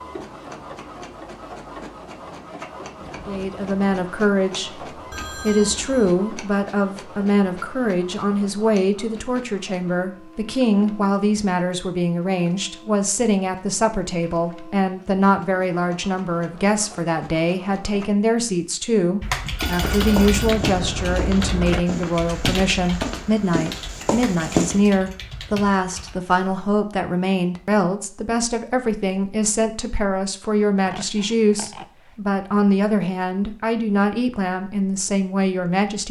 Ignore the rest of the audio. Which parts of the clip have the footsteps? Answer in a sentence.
The footsteps can be heard from 19.6 to 24.8 s.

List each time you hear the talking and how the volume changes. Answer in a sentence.
You can hear the talking briefly from 3.2 to 4.8 s; and from 5.4 to 36.0 s, at a steady volume.